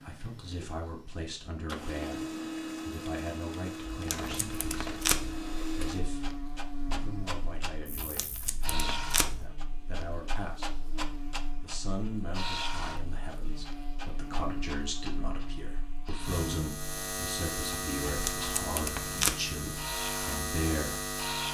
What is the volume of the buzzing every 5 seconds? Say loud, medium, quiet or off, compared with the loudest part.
off, medium, medium, loud, loud.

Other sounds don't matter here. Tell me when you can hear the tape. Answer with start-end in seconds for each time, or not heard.
3.9-5.4, 8.0-9.5, 18.1-19.4.